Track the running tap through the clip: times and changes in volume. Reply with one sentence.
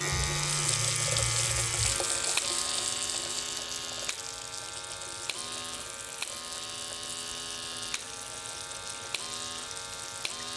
You can hear the running tap from 0.0 to 10.5 s, getting quieter.